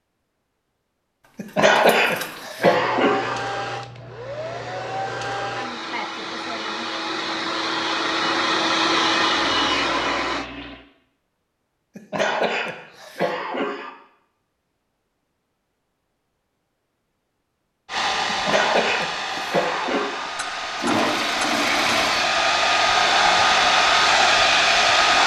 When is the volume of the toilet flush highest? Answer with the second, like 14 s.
21 s.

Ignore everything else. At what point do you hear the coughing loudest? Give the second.
2 s.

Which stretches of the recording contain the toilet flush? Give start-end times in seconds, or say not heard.
1.4-2.5, 9.3-10.8, 20.4-22.3.